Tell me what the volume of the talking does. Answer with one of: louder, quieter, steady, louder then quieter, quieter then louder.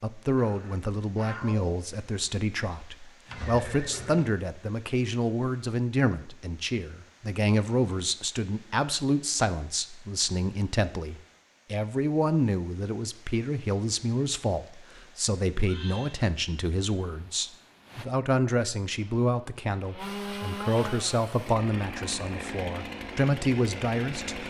steady.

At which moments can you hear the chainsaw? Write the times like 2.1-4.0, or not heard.
18.9-24.4.